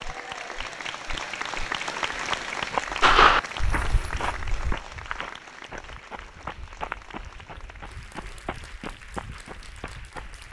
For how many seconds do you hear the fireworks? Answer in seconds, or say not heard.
2 s.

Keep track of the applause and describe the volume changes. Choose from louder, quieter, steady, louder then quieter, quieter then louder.
quieter.